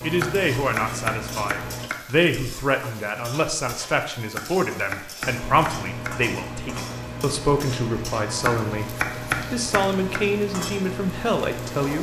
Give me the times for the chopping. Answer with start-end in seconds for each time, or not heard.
0.0-1.9, 4.2-6.2, 8.2-10.2.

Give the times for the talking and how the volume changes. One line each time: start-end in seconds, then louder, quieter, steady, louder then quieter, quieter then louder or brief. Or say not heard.
0.0-11.9 steady.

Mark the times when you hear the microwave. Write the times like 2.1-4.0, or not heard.
0.0-1.9, 5.2-11.9.